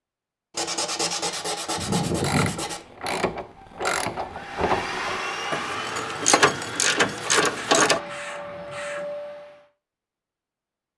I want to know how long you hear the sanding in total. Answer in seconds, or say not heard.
4 s.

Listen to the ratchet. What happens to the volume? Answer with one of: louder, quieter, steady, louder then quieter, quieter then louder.
louder.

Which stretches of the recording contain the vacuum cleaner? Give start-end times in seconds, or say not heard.
4.3-9.7.